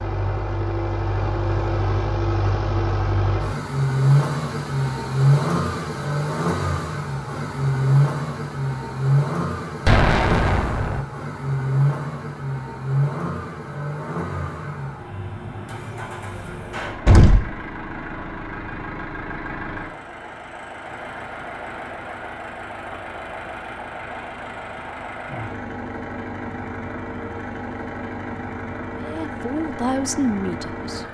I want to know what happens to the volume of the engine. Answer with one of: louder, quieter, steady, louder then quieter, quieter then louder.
quieter.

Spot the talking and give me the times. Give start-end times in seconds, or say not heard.
28.9-31.0.